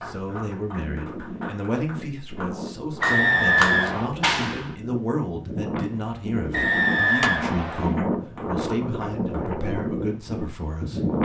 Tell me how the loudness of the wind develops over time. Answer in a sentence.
The loudness of the wind goes up.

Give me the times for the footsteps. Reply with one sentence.
You can't hear the footsteps here.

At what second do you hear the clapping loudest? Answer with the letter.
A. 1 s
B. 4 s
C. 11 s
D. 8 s
B.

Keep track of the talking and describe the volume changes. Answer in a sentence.
The volume of the talking stays about the same.